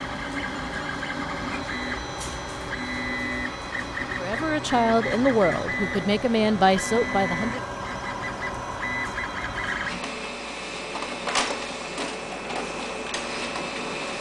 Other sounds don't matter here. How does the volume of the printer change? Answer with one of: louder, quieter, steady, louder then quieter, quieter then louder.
steady.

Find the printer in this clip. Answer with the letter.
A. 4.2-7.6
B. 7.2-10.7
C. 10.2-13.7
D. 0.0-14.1
D.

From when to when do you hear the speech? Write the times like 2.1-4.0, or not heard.
4.2-7.6.